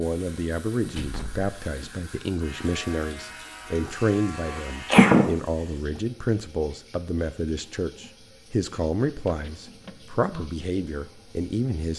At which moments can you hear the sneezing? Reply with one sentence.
You can hear the sneezing from 4.5 to 5.3 s.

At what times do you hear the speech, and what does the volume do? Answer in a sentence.
You can hear the speech from 0.0 to 11.9 s, at a steady volume.